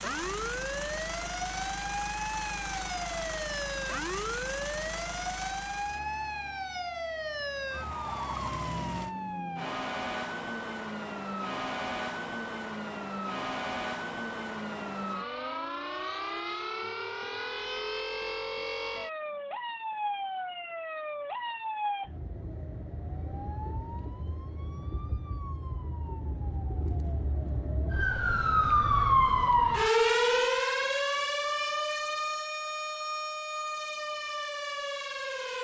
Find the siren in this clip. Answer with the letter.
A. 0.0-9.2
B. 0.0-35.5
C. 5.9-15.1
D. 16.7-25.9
B.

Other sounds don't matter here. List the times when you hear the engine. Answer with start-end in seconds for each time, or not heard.
0.0-9.2.